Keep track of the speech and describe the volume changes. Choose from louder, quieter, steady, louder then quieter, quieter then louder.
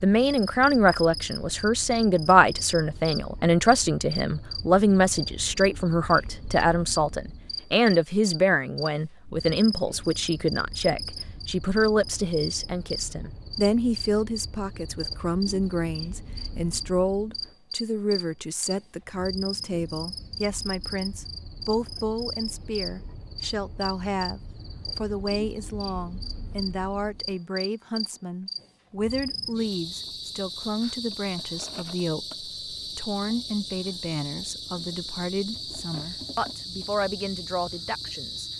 quieter.